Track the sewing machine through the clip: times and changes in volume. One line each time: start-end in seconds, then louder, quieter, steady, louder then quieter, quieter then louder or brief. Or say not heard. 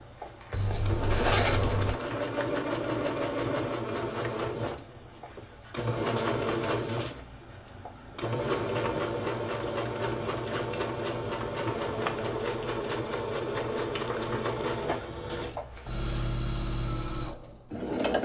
0.0-18.1 steady.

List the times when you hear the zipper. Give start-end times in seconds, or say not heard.
0.5-2.0, 6.2-7.2, 15.2-16.3.